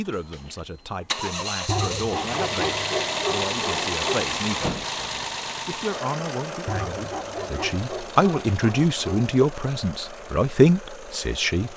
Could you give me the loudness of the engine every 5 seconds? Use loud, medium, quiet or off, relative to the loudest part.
loud, medium, quiet.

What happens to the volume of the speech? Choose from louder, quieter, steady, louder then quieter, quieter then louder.
louder.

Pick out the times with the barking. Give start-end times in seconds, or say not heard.
1.6-4.3, 6.7-9.3.